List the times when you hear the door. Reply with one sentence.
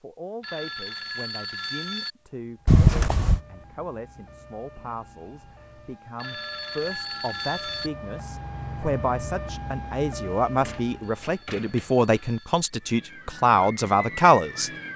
You can hear the door from 2.6 to 3.4 s and from 10.4 to 12.3 s.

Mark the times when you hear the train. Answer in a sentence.
You can't hear the train here.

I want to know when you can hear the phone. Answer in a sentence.
You can hear the phone from 0.4 to 2.1 s, from 6.2 to 7.9 s and from 11.0 to 12.7 s.